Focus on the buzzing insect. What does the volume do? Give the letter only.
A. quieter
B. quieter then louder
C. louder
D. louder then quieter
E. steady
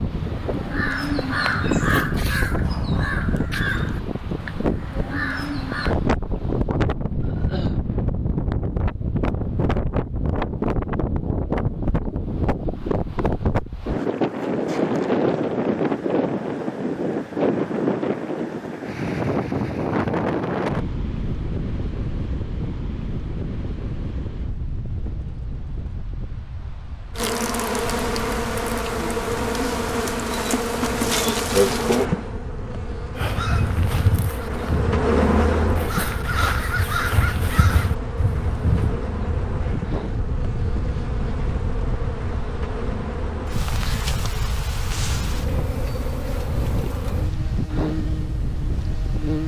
A.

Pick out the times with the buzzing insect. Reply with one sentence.
The buzzing insect can be heard from 27.1 to 49.4 s.